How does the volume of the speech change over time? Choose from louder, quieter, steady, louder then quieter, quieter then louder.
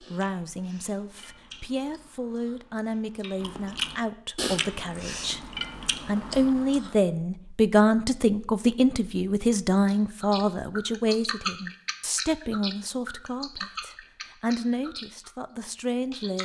louder then quieter.